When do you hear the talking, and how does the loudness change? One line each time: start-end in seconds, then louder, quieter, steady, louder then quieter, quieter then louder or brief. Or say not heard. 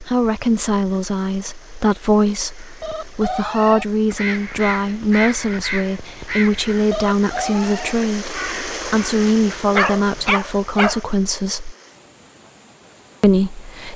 0.0-11.8 steady
13.2-13.9 brief.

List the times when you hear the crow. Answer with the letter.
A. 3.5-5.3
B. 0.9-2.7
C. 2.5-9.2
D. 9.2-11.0
C.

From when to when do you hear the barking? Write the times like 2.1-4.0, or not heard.
9.2-11.0.